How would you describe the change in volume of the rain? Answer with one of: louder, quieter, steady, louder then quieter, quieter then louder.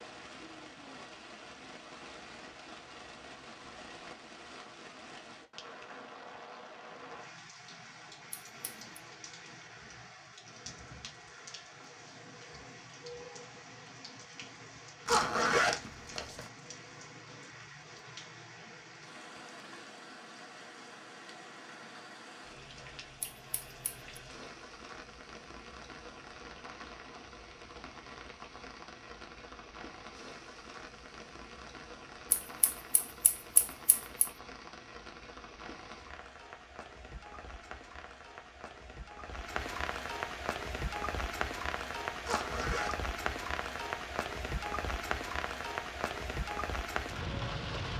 louder.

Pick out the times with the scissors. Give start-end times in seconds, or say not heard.
8.3-8.8, 23.2-24.0, 32.3-34.3.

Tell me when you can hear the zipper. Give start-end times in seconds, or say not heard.
15.1-16.5, 42.2-43.0.